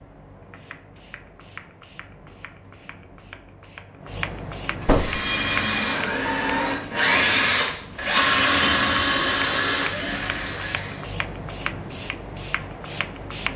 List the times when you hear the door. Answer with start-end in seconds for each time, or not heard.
4.8-5.2.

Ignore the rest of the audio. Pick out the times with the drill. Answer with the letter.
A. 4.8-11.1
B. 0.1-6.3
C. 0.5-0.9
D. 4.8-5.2
A.